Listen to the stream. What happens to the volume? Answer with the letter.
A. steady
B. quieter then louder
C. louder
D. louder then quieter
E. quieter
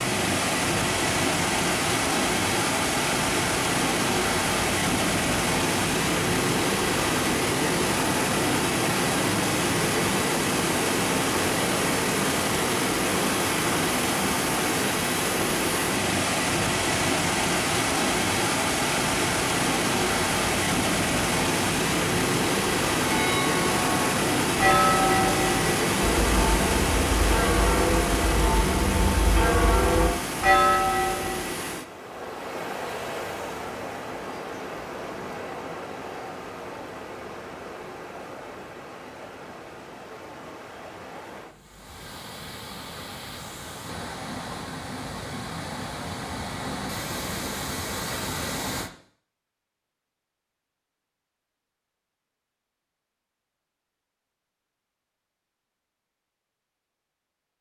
E.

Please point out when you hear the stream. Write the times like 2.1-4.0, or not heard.
0.0-48.9.